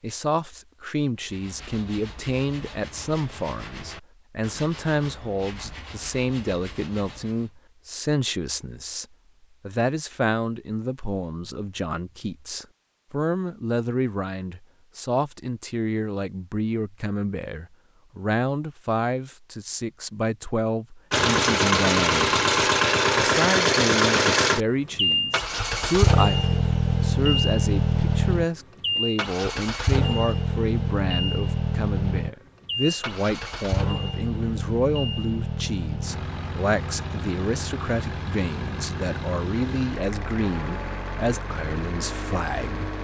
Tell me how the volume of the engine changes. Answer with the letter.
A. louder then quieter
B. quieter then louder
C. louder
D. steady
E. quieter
E.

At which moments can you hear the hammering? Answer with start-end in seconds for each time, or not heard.
not heard.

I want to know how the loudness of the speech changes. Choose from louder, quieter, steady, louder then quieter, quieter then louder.
steady.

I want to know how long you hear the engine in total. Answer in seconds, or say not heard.
22 s.